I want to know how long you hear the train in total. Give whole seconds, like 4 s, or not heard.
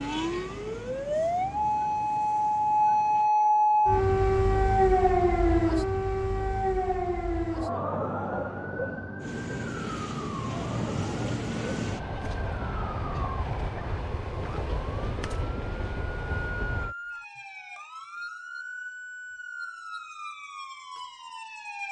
11 s.